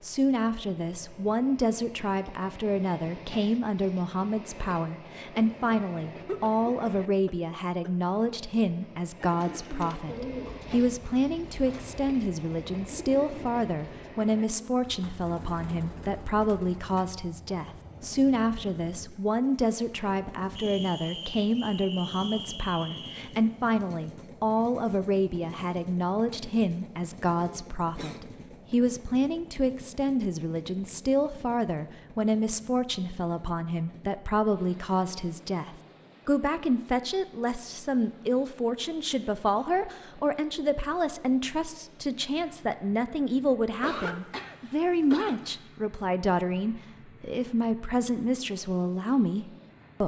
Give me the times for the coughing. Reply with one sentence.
The coughing can be heard from 6.2 to 7.9 s, from 27.3 to 28.2 s and from 43.8 to 45.5 s.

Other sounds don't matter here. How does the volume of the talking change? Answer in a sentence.
The loudness of the talking stays about the same.